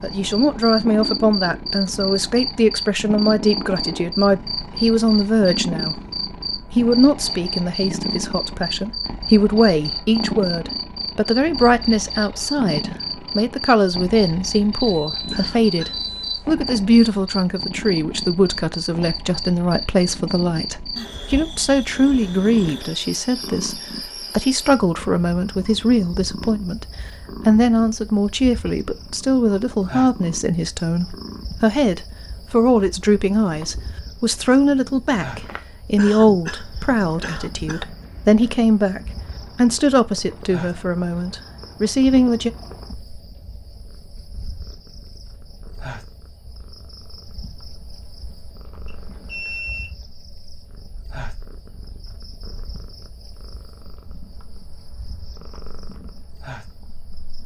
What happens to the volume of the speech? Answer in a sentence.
The volume of the speech stays about the same.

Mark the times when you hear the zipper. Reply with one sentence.
The zipper can't be heard in this clip.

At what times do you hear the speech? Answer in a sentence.
You can hear the speech from 0.0 to 6.0 s, from 6.8 to 26.9 s and from 27.4 to 42.5 s.